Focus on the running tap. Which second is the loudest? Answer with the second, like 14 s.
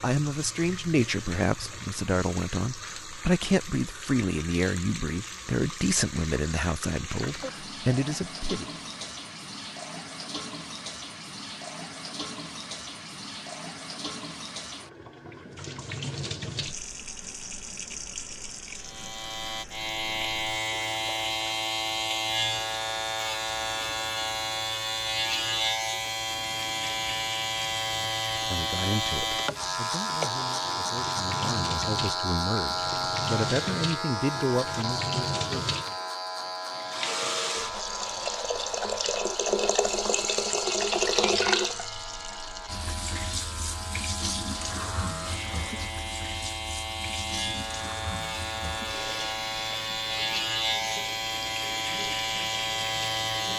41 s.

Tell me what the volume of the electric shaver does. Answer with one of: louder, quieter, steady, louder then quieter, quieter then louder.
quieter then louder.